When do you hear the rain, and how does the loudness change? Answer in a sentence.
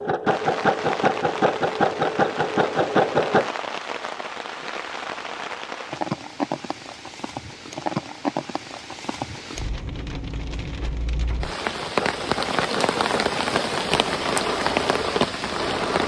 You can hear the rain from 0.1 to 16.0 s, getting louder.